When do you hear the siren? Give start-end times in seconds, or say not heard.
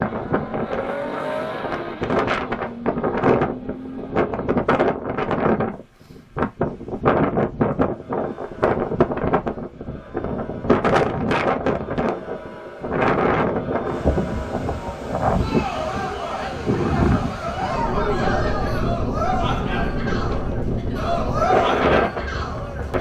not heard.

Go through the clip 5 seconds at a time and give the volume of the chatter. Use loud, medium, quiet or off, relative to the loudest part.
off, quiet, medium, loud, loud.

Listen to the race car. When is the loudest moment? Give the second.
1 s.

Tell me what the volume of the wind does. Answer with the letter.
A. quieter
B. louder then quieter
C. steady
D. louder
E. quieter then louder
C.